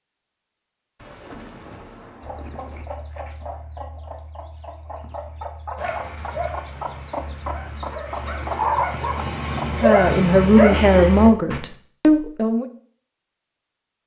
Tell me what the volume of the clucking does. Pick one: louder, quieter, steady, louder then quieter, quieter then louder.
louder.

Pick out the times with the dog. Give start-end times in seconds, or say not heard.
5.8-11.6.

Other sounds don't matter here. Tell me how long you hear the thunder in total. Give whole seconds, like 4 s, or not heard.
2 s.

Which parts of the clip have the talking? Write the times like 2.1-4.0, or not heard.
9.8-12.7.